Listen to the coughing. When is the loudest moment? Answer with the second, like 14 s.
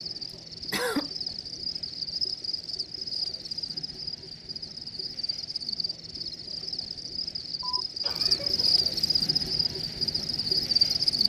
1 s.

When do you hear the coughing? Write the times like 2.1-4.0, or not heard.
0.7-1.1, 7.8-8.8.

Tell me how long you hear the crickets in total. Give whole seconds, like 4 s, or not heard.
11 s.